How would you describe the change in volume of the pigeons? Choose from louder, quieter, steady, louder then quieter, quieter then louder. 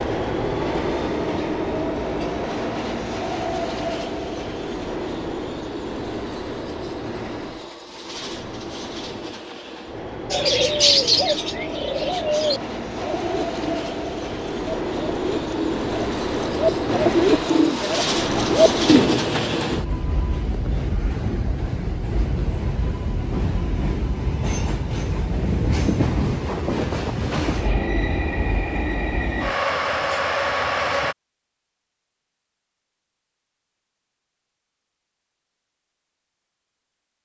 quieter then louder.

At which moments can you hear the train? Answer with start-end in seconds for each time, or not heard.
0.0-31.1.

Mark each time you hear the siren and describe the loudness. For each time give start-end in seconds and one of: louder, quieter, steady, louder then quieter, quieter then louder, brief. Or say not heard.
not heard.